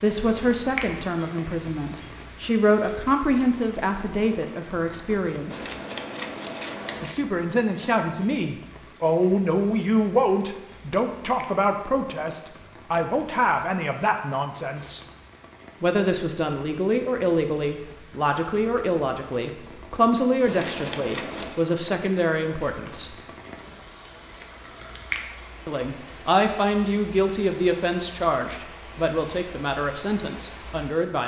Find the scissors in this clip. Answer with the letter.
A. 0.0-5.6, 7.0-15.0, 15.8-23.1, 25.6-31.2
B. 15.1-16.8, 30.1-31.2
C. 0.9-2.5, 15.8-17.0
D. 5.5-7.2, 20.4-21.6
D.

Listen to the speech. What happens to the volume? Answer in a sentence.
The volume of the speech stays about the same.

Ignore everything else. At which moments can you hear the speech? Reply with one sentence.
The speech can be heard from 0.0 to 5.6 s, from 7.0 to 15.0 s, from 15.8 to 23.1 s and from 25.6 to 31.2 s.